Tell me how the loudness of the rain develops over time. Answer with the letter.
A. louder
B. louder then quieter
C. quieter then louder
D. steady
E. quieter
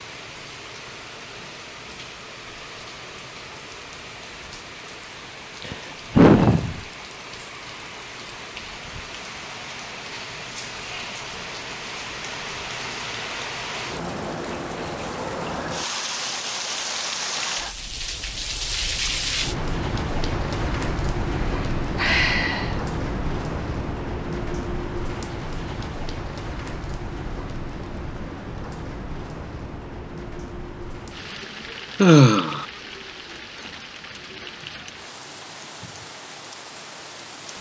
B.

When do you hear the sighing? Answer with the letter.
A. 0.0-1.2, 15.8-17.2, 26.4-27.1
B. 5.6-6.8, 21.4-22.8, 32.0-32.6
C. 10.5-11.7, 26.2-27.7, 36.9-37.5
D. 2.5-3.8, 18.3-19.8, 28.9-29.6
B.